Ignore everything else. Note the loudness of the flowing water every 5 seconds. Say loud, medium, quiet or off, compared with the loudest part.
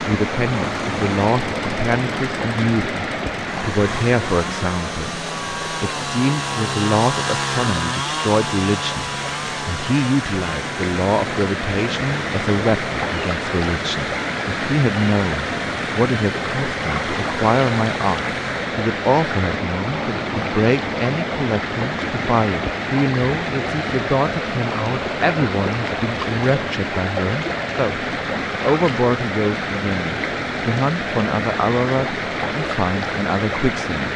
loud, medium, loud, loud, loud, loud, loud.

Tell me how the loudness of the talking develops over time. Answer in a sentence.
The loudness of the talking stays about the same.